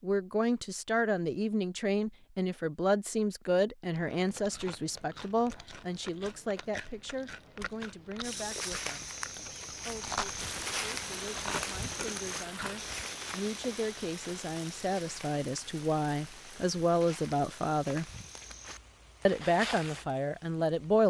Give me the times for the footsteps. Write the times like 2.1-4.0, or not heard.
8.2-20.1.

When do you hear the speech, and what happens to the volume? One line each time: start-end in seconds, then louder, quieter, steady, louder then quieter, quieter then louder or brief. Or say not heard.
0.0-9.1 quieter
9.8-18.1 louder
19.2-21.0 brief.